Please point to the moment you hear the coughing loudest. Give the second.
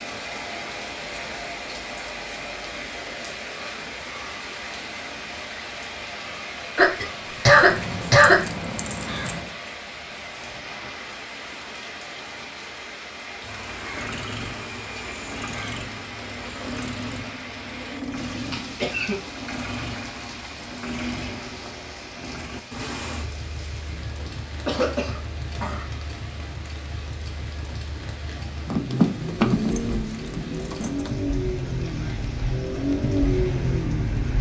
8 s.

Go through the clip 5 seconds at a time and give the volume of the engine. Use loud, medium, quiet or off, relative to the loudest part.
off, off, medium, medium, medium, medium, loud.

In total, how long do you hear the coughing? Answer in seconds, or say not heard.
4 s.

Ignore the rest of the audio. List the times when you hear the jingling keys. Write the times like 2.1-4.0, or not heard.
7.5-9.6, 28.6-31.1.